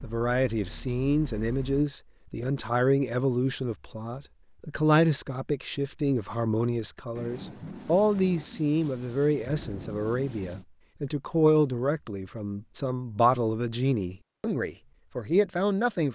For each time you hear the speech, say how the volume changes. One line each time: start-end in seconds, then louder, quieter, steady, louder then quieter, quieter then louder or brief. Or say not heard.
0.0-16.1 steady.